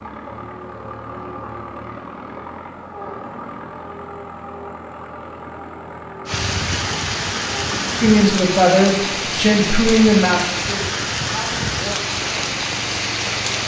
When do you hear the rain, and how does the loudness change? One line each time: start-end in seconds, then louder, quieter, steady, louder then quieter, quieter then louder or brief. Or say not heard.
6.2-13.6 steady.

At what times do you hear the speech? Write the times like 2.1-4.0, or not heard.
8.0-12.0.